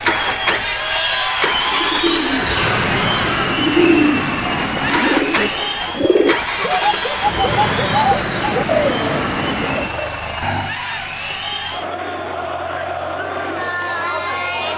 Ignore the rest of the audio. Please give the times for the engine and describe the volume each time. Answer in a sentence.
The engine can be heard from 0.0 to 14.7 s, getting quieter.